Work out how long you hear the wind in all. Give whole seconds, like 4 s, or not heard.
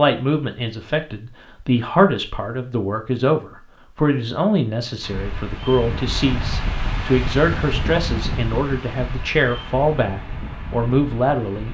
7 s.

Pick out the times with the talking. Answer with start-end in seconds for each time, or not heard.
0.0-11.7.